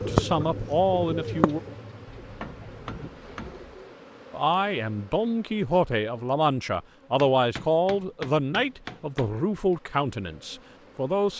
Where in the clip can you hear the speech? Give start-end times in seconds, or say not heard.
0.1-1.6, 4.3-11.3.